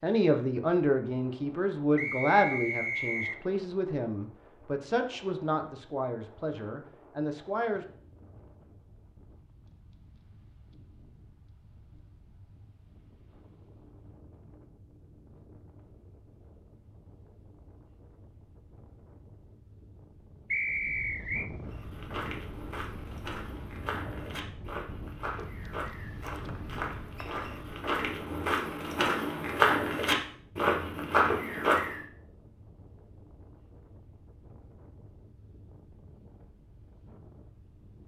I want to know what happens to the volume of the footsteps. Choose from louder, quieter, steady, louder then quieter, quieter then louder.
louder.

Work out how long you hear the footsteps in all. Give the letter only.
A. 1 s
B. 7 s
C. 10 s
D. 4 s
C.